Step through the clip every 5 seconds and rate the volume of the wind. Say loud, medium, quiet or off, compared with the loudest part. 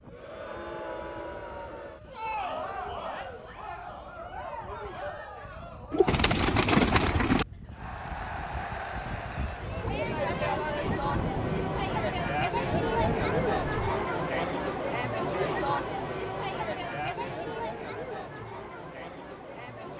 quiet, medium, loud, off.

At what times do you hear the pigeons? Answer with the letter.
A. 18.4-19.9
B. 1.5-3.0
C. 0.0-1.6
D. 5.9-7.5
D.